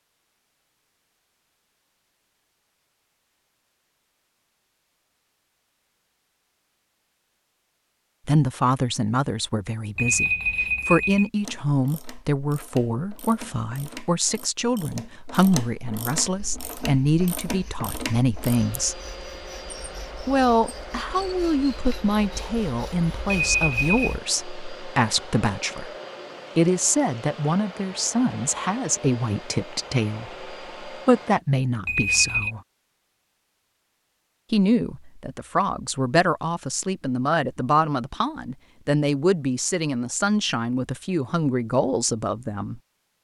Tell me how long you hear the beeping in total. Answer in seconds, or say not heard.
3 s.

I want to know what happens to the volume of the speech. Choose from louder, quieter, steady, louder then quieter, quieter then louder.
steady.